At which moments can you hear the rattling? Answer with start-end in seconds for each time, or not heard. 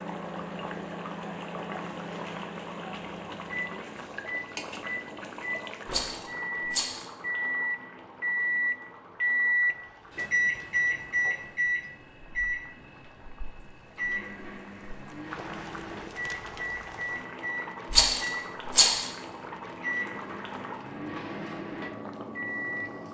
5.8-7.0, 17.9-19.1.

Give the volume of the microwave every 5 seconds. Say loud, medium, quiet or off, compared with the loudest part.
medium, loud, loud, medium, medium.